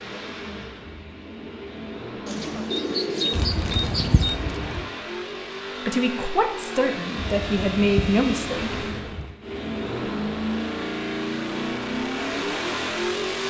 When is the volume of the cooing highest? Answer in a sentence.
The loudest moment of the cooing is at 3 seconds.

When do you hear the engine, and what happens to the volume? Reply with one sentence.
You can hear the engine from 0.0 to 13.4 s, getting louder.